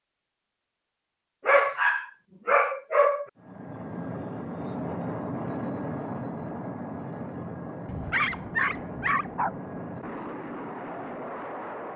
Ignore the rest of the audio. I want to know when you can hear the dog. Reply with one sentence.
The dog can be heard from 1.4 to 3.2 s and from 7.8 to 9.6 s.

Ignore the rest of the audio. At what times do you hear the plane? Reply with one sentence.
You can hear the plane from 3.4 to 11.9 s.